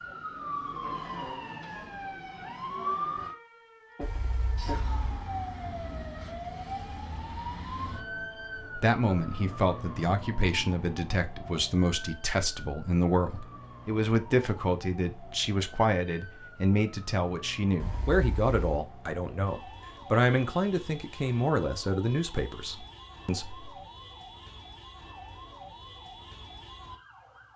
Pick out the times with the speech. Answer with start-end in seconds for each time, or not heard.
8.8-23.7.